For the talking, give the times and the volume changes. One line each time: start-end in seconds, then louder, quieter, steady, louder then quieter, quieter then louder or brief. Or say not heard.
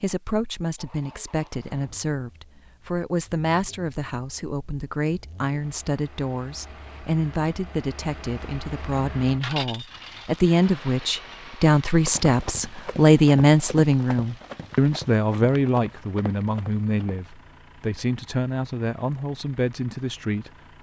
0.0-20.5 louder then quieter.